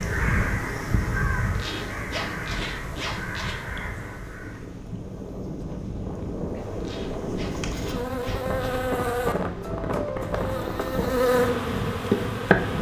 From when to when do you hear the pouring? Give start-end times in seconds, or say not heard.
not heard.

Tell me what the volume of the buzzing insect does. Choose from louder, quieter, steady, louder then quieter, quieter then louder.
quieter then louder.